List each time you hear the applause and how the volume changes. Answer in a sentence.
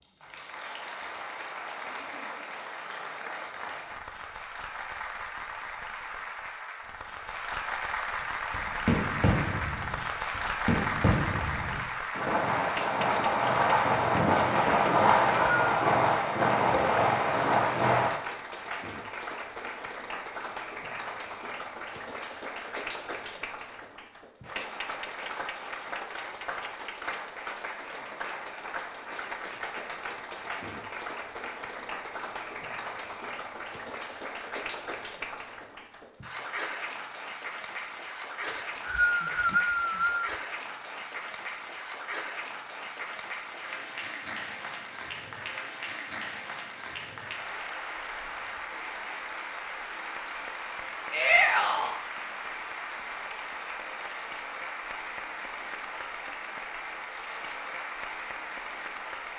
You can hear the applause from 0.0 to 59.3 s, at a steady volume.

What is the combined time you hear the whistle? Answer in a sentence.
The whistle can be heard for 3 seconds in total.